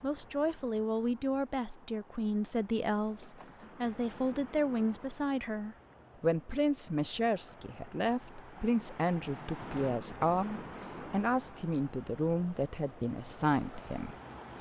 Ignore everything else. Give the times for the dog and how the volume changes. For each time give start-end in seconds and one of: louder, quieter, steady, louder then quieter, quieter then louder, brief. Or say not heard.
not heard.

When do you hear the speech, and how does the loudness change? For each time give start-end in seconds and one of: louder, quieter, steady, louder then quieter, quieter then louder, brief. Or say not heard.
0.0-14.5 steady.